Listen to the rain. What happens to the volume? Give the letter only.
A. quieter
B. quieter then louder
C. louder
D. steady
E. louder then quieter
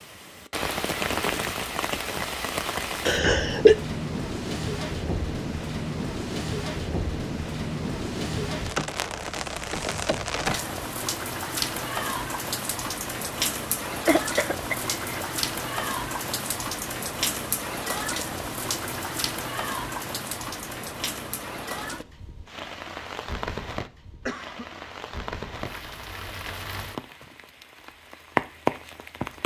D.